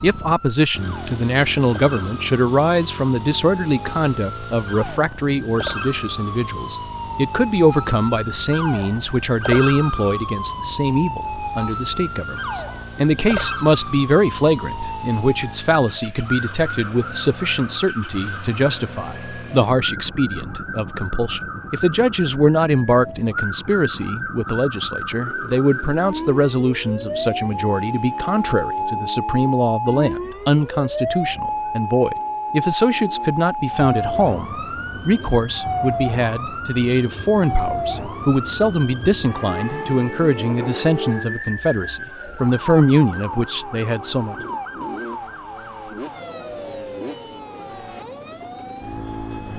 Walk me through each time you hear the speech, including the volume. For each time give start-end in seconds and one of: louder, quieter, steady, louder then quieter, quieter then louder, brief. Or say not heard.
0.0-44.4 steady.